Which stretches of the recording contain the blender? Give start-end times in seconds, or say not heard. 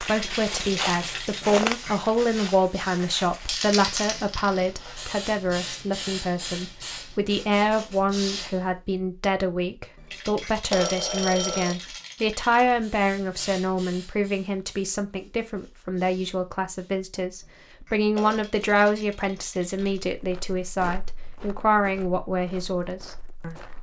not heard.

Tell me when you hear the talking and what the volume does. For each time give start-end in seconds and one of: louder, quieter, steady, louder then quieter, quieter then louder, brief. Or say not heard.
0.0-23.6 steady.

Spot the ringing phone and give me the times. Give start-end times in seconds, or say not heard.
1.4-1.9, 10.4-11.8, 17.9-18.5.